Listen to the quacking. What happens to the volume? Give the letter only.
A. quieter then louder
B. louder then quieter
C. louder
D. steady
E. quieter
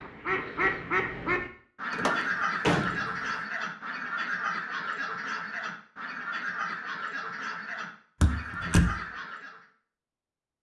E.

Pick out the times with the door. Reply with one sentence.
The door can be heard from 1.9 to 3.1 s and from 8.2 to 8.9 s.